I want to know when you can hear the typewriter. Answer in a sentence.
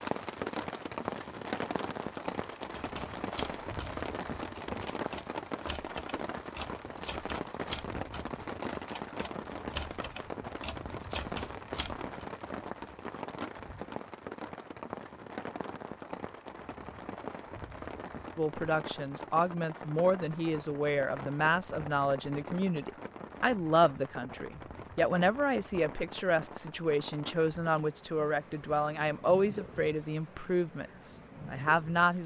The typewriter can be heard from 2.8 to 12.3 s.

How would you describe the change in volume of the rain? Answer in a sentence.
The loudness of the rain goes down.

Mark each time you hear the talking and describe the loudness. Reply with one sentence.
You can hear the talking from 18.4 to 32.2 s, at a steady volume.